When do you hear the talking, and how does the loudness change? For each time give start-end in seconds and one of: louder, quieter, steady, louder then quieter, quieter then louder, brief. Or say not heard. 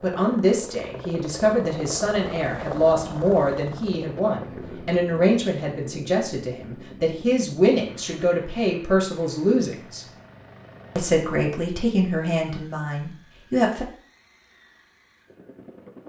0.0-10.1 steady
10.9-13.8 brief.